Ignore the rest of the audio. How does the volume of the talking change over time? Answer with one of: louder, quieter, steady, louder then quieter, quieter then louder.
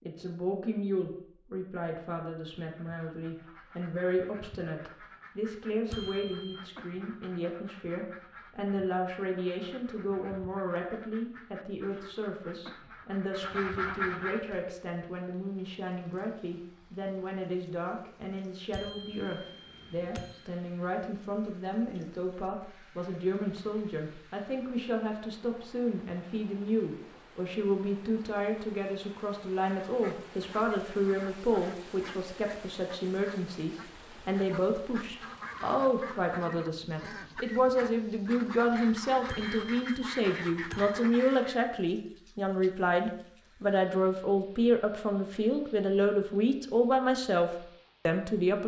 louder.